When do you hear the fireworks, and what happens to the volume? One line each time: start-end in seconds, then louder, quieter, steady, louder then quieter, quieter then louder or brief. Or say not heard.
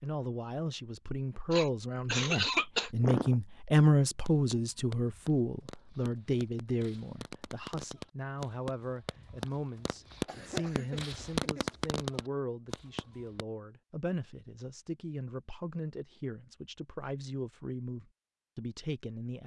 4.2-13.4 louder.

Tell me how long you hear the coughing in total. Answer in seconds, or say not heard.
3 s.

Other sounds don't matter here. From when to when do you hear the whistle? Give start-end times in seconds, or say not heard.
not heard.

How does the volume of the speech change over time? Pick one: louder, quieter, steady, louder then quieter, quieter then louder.
quieter.